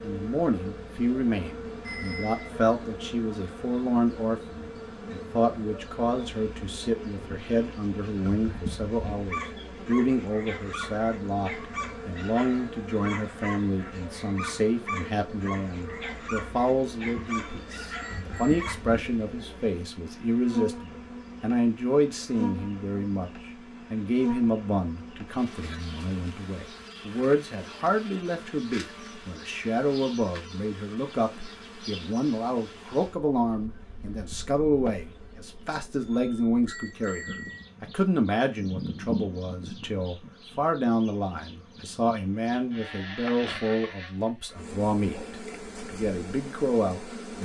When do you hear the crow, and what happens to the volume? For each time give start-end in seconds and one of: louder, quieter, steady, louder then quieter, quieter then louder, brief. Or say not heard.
not heard.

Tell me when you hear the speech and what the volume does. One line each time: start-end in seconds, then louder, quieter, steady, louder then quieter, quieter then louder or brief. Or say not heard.
0.0-47.4 steady.